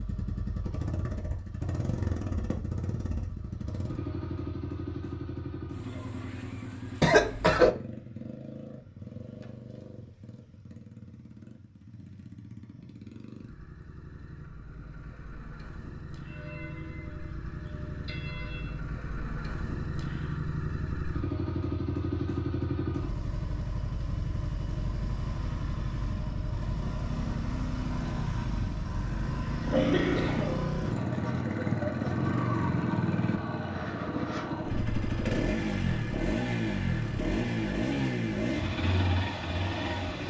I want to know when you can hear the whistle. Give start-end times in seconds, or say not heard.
not heard.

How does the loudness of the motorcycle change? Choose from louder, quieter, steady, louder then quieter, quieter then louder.
quieter then louder.